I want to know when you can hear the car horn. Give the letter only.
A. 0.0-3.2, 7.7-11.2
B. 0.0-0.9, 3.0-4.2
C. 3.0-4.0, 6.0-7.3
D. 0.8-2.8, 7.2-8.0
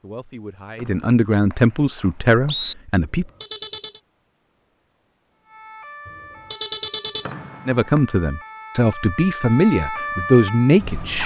C.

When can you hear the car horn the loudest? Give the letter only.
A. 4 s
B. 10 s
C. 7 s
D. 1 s
C.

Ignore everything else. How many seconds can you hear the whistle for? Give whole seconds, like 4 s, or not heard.
3 s.